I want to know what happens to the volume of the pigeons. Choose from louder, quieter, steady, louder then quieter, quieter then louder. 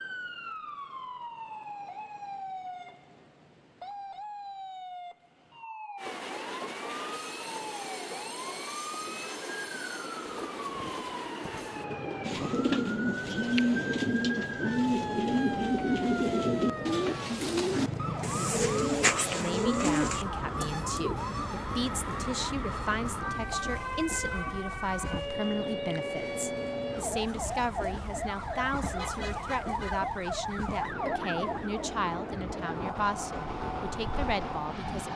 steady.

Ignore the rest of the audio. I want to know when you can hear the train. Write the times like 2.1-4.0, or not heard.
6.0-35.1.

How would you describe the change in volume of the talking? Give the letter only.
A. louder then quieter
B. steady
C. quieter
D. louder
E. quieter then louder
B.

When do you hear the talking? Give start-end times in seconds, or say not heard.
19.3-35.1.